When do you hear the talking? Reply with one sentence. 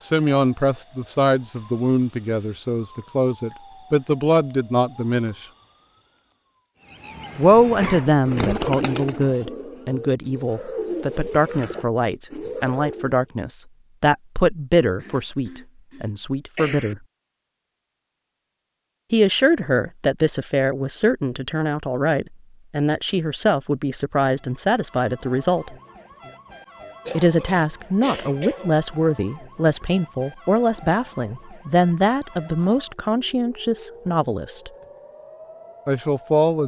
The talking can be heard from 0.0 to 5.5 s, from 7.3 to 17.0 s, from 19.1 to 25.8 s, from 27.1 to 34.7 s and from 35.9 to 36.6 s.